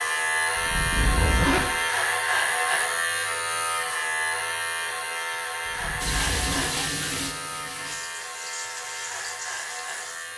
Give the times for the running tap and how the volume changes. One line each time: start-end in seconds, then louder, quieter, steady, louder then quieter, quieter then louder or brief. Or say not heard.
6.0-10.3 quieter.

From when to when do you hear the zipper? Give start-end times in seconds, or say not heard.
0.6-1.7, 5.7-6.8.